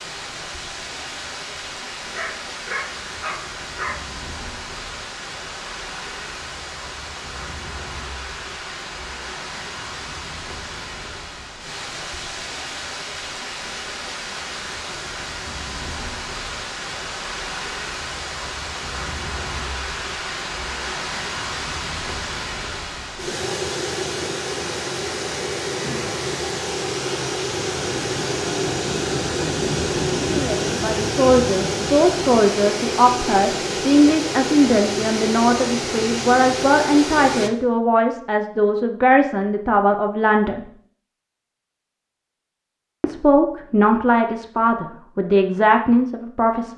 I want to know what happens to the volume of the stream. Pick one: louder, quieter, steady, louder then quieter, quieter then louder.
louder.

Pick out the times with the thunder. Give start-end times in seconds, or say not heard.
27.5-32.4.